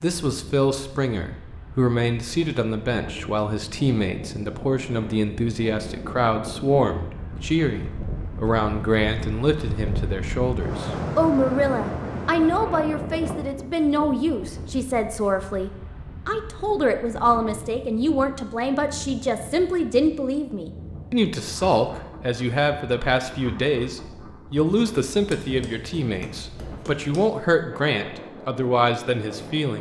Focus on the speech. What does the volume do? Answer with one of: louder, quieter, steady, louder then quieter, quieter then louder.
steady.